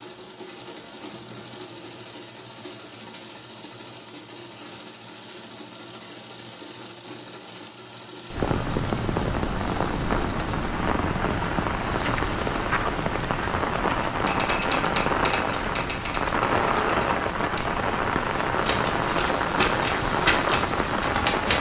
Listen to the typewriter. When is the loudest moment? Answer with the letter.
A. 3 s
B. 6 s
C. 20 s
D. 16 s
C.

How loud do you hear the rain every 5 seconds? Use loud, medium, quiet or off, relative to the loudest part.
off, loud, loud, loud, loud.